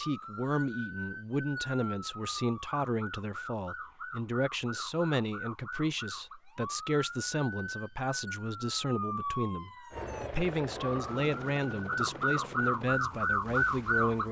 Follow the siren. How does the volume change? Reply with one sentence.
The loudness of the siren goes up.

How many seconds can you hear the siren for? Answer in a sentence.
You can hear the siren for 14 seconds altogether.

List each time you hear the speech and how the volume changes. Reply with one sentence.
The speech can be heard from 0.0 to 14.2 s, at a steady volume.